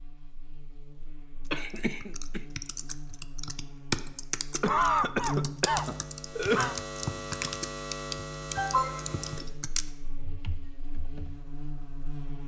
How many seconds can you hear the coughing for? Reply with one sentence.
The coughing can be heard for 4 seconds in total.